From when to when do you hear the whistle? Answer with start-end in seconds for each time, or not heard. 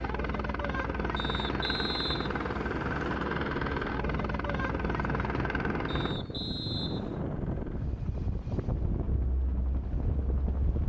1.1-3.1, 5.8-7.2.